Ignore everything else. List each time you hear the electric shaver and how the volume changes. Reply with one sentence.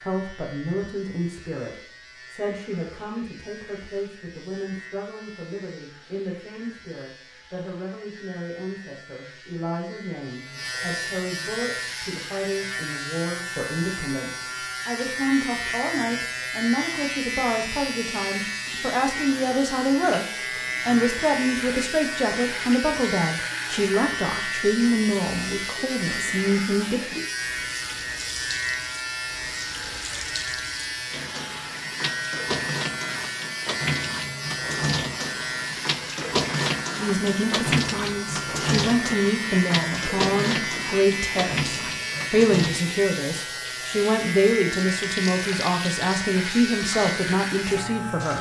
The electric shaver can be heard from 0.0 to 48.3 s, getting louder.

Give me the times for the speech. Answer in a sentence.
The speech can be heard from 0.0 to 27.1 s and from 37.0 to 48.3 s.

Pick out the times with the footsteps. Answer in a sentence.
You can't hear the footsteps here.